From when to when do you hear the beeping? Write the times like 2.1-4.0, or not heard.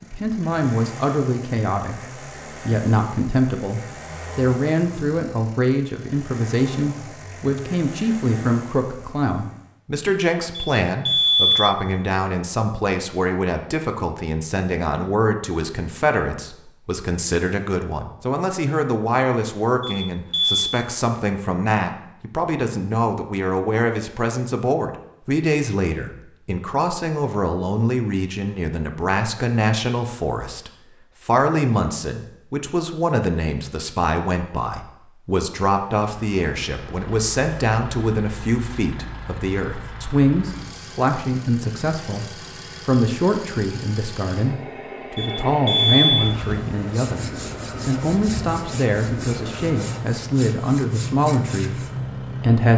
10.6-11.6, 19.8-20.7, 45.1-46.2.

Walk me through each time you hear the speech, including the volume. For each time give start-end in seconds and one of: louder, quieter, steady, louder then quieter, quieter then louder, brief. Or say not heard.
0.0-52.7 steady.